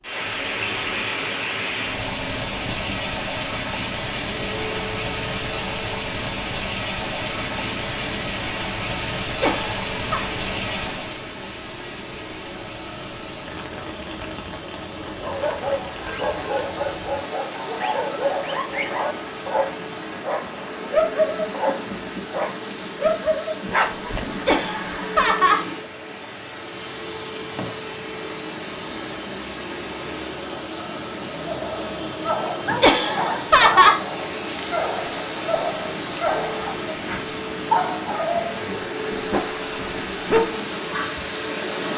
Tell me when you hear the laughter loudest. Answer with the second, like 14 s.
34 s.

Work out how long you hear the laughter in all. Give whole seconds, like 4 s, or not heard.
3 s.